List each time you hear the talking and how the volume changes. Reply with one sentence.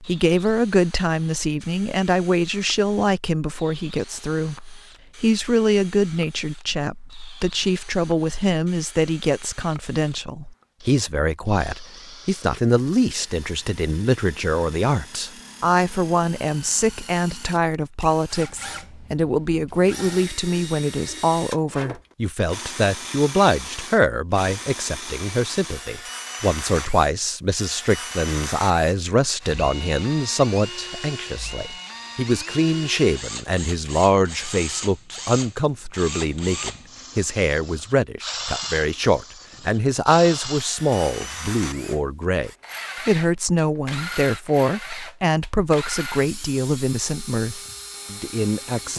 You can hear the talking from 0.0 to 48.9 s, at a steady volume.